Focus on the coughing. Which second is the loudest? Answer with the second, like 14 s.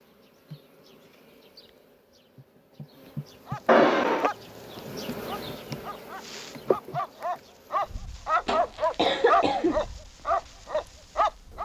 4 s.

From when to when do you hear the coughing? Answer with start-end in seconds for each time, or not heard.
3.6-4.3, 8.4-9.8.